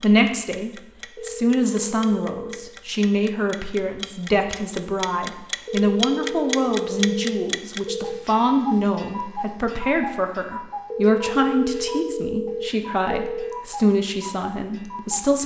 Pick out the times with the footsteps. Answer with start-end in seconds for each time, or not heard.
not heard.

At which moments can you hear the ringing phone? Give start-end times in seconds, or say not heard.
1.1-2.8, 5.7-8.3, 10.9-13.7.